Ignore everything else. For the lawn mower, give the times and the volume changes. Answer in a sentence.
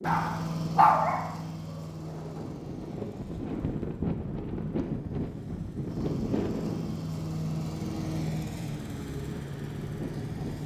The lawn mower can be heard from 0.0 to 10.6 s, getting quieter then louder.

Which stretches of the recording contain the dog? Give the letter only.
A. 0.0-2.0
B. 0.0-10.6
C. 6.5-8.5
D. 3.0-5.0
A.